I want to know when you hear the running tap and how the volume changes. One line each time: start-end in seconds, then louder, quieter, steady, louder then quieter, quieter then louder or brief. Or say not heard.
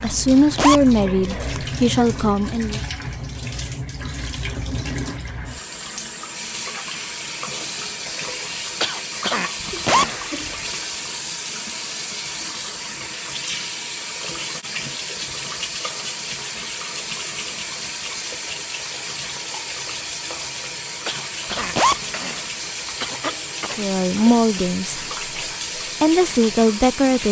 0.0-27.2 steady.